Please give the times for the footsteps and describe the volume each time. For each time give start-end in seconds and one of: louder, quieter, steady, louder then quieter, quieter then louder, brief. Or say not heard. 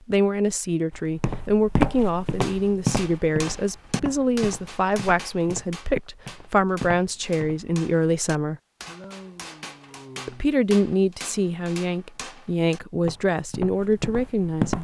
0.9-7.7 quieter
13.0-14.7 brief.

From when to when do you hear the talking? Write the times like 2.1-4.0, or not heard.
0.1-8.6, 10.2-14.7.